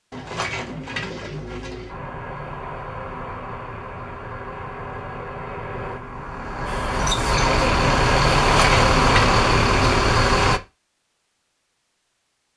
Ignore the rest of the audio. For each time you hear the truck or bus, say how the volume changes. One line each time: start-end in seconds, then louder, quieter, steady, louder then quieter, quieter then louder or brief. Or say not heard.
1.9-10.6 louder.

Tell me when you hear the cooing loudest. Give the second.
9 s.